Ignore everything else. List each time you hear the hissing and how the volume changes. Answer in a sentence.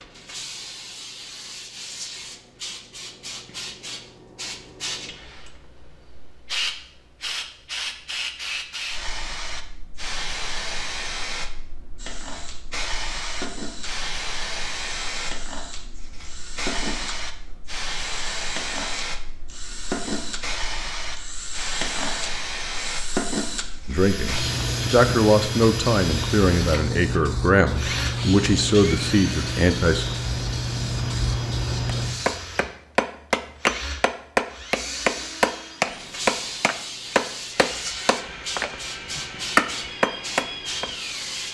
The hissing can be heard from 0.0 to 32.4 s, getting louder; and from 34.7 to 41.4 s, at a steady volume.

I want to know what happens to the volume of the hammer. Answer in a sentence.
The volume of the hammer goes down, then up.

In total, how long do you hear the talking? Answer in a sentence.
You can hear the talking for 6 seconds altogether.